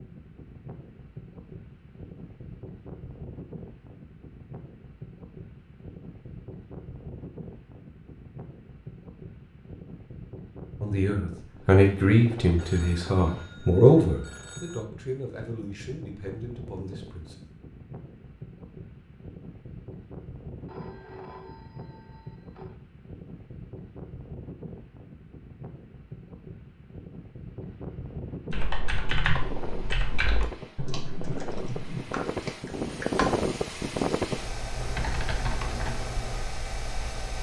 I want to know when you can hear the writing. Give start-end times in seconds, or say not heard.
not heard.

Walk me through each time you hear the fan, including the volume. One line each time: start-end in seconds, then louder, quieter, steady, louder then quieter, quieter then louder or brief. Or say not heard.
0.0-37.3 louder.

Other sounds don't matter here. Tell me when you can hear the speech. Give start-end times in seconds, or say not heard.
10.8-17.4.